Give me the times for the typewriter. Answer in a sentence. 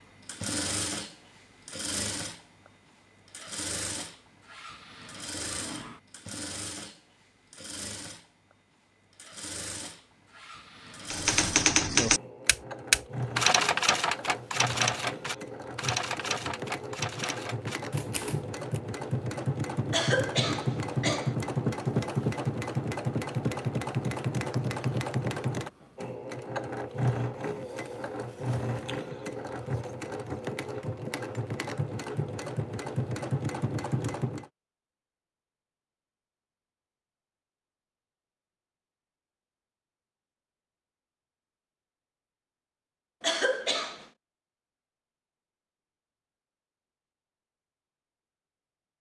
The typewriter can be heard from 11.1 to 18.8 s.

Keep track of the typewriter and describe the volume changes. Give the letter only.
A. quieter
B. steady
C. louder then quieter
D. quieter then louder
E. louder
A.